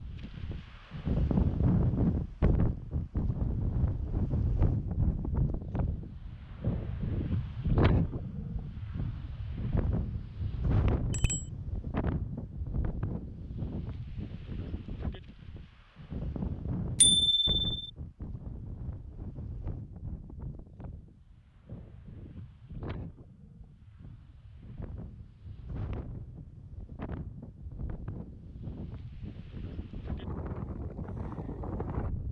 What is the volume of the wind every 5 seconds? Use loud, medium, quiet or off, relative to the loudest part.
loud, loud, medium, medium, quiet, quiet, medium.